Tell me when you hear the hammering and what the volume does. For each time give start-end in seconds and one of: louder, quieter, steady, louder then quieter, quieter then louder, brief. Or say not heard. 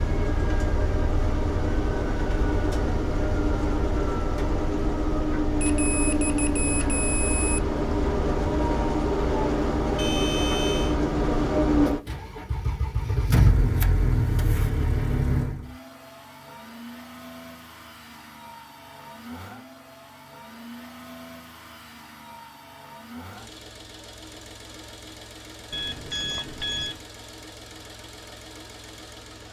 not heard.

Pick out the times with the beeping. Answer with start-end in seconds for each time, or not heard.
5.6-7.6, 9.9-10.9, 25.7-27.0.